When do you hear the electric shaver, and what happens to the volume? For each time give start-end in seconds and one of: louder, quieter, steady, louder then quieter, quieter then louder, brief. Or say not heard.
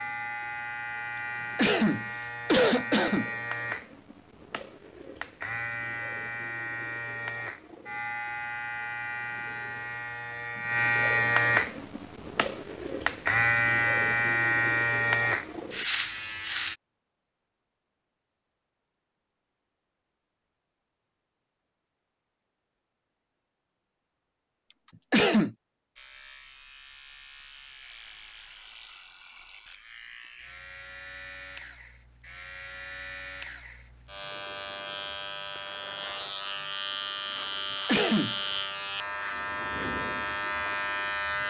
0.0-16.8 louder
25.9-41.4 louder.